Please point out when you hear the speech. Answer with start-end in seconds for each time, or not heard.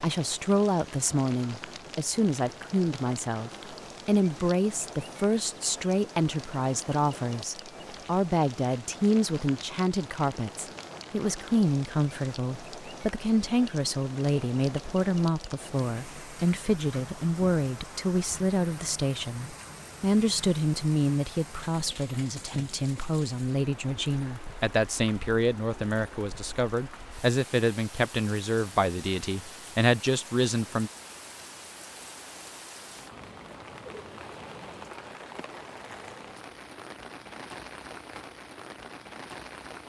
0.0-30.9.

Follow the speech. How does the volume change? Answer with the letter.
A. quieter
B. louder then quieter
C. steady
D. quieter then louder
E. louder
C.